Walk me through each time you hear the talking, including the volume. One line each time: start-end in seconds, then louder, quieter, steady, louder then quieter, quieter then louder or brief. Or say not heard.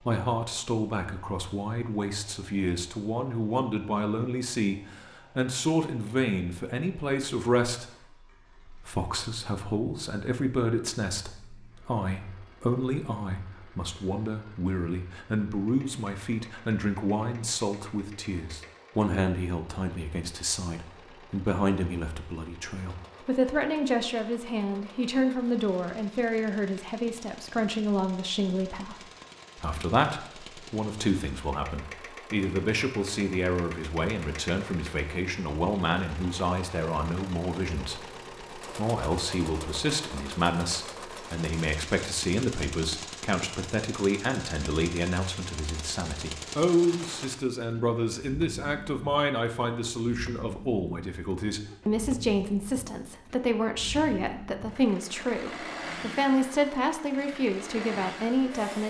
0.0-58.8 steady.